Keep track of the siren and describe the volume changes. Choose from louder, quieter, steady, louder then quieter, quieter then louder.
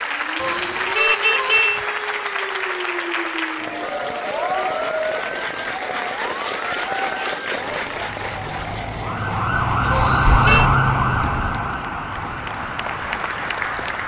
louder then quieter.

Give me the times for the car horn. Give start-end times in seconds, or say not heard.
0.3-1.8, 9.9-10.7.